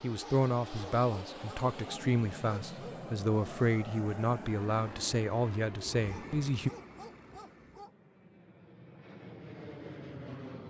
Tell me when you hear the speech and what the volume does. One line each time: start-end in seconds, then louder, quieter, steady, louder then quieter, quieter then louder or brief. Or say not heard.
0.0-6.7 steady.